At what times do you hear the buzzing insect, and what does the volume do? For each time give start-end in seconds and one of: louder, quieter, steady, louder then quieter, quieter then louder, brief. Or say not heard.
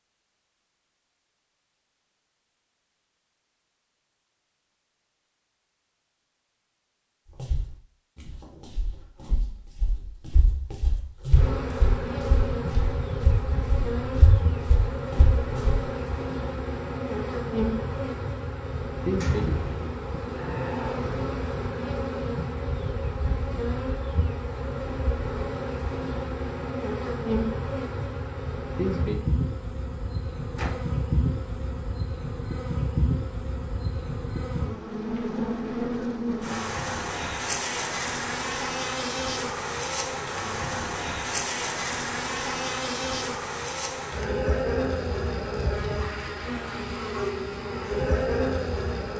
11.3-49.1 steady.